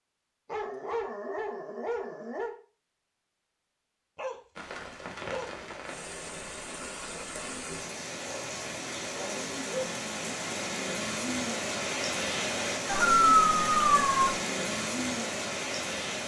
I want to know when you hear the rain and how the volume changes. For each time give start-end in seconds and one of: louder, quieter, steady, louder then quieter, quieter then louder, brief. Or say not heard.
4.5-16.2 louder.